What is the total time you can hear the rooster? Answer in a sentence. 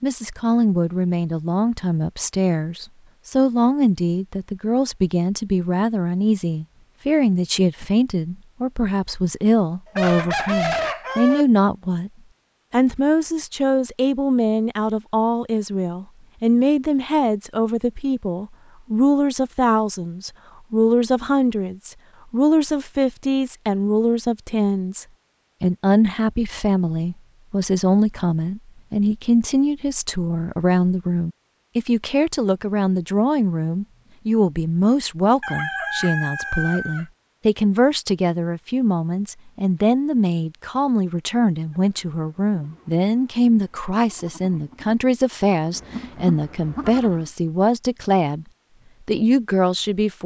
You can hear the rooster for 3 seconds altogether.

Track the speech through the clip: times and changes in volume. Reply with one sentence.
The speech can be heard from 0.0 to 12.1 s, at a steady volume; from 12.7 to 48.5 s, at a steady volume; and briefly from 49.0 to 50.2 s.